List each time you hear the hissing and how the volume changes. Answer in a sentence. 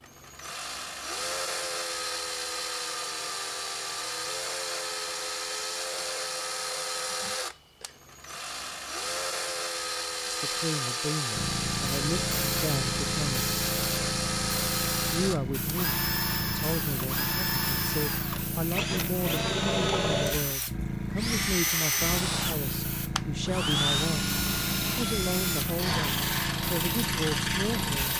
The hissing can be heard from 11.3 to 28.1 s, at a steady volume.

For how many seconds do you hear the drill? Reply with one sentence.
You can hear the drill for 28 seconds altogether.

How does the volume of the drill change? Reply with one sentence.
The volume of the drill stays about the same.